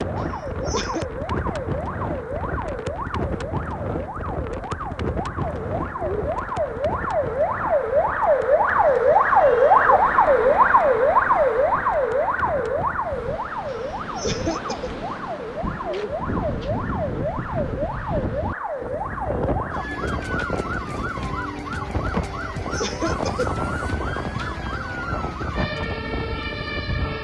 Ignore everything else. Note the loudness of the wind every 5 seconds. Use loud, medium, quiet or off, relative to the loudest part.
loud, loud, medium, loud, loud, loud.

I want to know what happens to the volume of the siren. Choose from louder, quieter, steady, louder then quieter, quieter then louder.
louder then quieter.